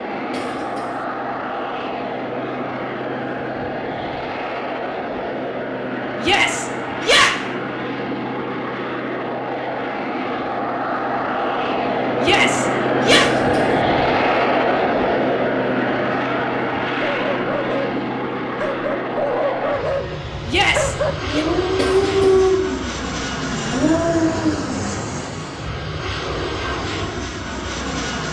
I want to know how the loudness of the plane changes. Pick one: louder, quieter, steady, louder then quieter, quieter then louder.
louder then quieter.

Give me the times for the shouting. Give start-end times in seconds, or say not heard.
6.2-7.3, 12.2-13.3, 20.4-21.4.